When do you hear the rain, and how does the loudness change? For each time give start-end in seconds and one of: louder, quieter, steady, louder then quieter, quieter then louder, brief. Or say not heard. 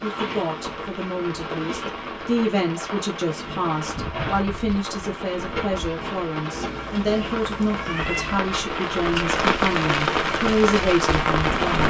0.0-11.8 louder.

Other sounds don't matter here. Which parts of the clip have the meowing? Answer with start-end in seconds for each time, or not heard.
6.5-8.4.